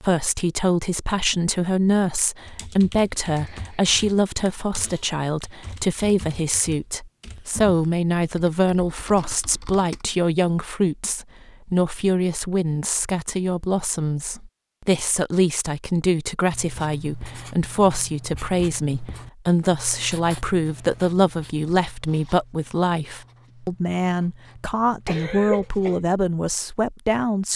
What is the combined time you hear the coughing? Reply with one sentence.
The coughing can be heard for 2 seconds in total.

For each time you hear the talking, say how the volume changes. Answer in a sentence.
You can hear the talking from 0.0 to 27.5 s, at a steady volume.